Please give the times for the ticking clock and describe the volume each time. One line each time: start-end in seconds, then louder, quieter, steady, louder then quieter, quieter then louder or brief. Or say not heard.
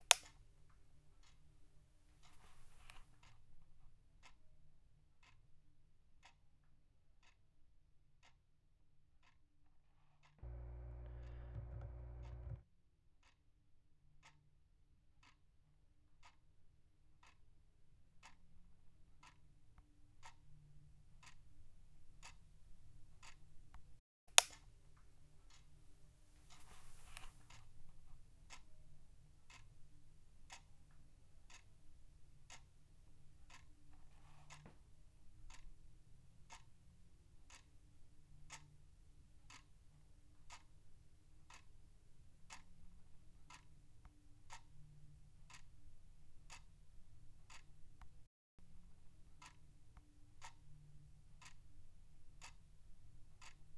0.0-53.7 louder then quieter.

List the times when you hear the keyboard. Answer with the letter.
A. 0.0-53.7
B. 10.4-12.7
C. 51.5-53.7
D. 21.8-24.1
B.